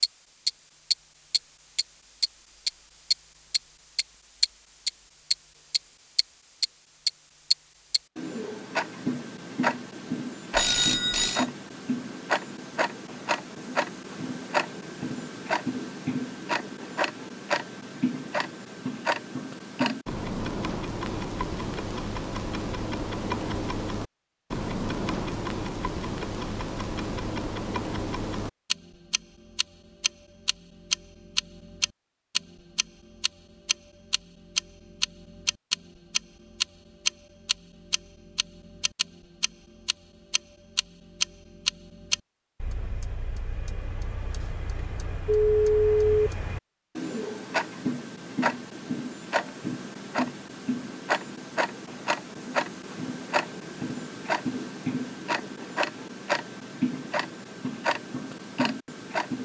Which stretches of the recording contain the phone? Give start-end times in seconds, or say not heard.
10.6-11.4, 45.2-46.3.